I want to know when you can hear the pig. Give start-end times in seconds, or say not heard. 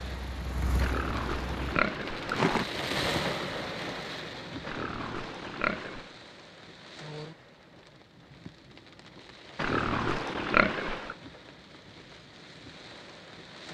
0.8-2.6, 4.7-6.2, 9.6-11.2.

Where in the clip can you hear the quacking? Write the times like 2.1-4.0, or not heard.
not heard.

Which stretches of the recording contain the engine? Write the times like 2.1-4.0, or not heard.
0.0-1.8.